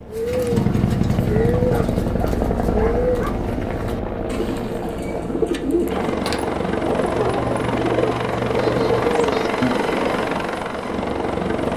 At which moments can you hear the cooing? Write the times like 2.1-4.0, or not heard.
0.1-9.8.